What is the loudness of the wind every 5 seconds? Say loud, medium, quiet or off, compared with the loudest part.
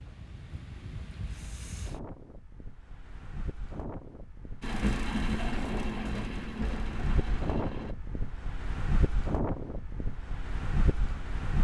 medium, loud, loud.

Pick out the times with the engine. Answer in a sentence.
The engine can be heard from 4.6 to 8.0 s.